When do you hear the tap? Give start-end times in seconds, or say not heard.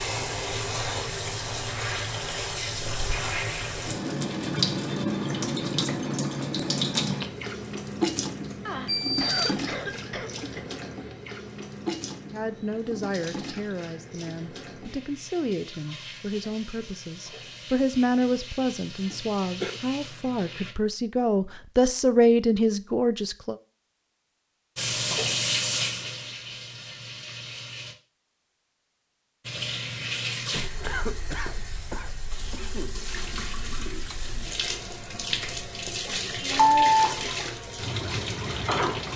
0.0-20.8, 24.8-27.9, 29.4-39.1.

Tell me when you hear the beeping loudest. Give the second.
37 s.